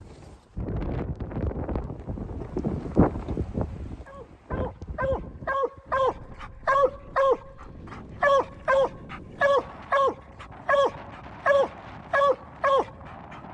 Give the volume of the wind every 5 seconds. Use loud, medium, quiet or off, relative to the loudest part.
loud, quiet, quiet.